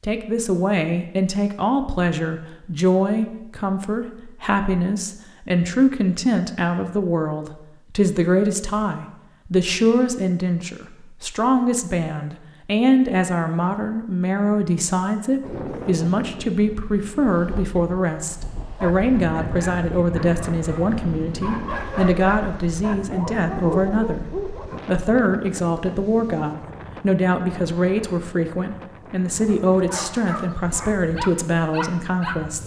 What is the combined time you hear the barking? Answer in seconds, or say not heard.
9 s.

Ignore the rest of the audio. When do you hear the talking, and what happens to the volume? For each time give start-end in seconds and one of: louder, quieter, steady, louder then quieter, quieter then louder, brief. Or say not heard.
0.0-32.6 steady.